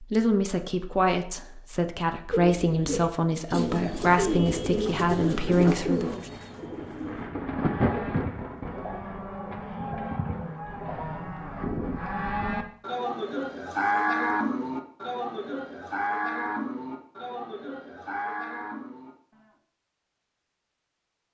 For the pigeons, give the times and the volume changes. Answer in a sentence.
You can hear the pigeons from 2.3 to 11.2 s, getting quieter.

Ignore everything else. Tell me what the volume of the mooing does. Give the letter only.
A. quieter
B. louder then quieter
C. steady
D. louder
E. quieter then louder
B.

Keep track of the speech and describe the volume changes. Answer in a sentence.
The loudness of the speech stays about the same.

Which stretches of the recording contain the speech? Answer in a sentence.
The speech can be heard from 0.0 to 6.2 s.